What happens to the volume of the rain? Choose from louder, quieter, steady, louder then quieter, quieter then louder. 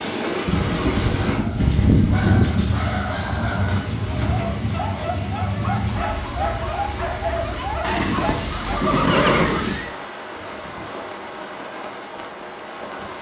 quieter.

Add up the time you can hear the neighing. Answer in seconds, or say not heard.
4 s.